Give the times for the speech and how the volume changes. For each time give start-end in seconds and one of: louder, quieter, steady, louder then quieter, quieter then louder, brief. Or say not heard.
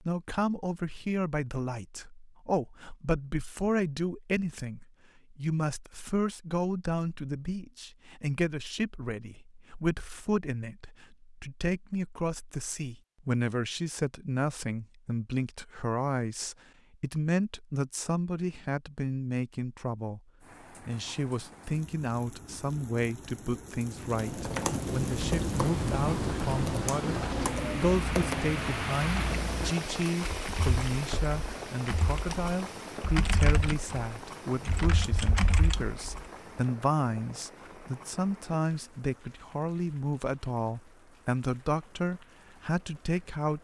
0.0-20.2 steady
20.9-43.5 steady.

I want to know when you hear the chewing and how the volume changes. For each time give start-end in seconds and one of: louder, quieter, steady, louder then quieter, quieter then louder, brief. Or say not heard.
not heard.